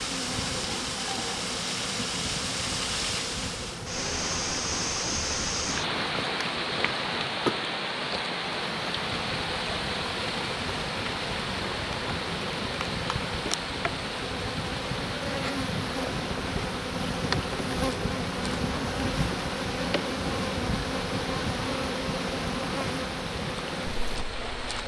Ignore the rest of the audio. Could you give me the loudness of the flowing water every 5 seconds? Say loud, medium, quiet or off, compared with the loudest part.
loud, loud, loud, medium, medium.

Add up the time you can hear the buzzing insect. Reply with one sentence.
You can hear the buzzing insect for 25 seconds altogether.